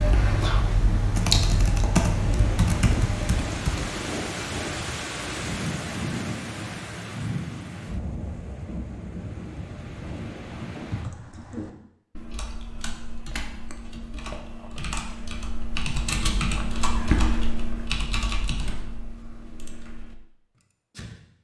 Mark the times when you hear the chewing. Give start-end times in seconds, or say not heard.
not heard.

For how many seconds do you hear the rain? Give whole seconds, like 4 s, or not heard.
11 s.